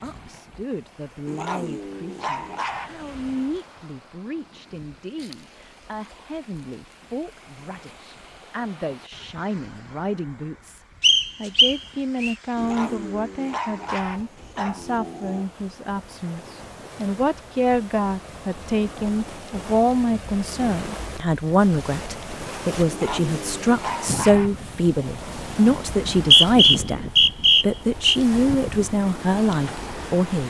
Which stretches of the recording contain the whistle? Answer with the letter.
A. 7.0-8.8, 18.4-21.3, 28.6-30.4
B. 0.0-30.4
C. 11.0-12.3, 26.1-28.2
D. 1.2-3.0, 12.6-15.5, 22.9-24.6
C.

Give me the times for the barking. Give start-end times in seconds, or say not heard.
1.2-3.0, 12.6-15.5, 22.9-24.6.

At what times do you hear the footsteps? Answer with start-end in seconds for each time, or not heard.
not heard.